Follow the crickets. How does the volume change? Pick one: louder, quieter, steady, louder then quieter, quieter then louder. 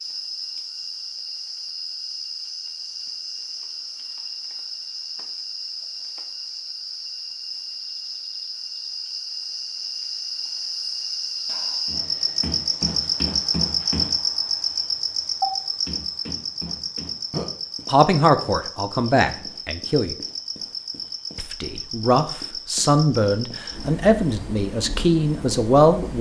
louder then quieter.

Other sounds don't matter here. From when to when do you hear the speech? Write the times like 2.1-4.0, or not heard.
17.9-20.1, 21.4-26.1.